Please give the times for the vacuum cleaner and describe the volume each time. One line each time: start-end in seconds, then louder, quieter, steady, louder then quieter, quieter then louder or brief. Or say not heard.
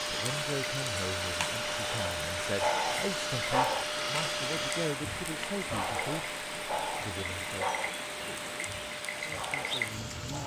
0.0-10.4 quieter.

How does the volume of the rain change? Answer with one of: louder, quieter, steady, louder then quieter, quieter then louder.
steady.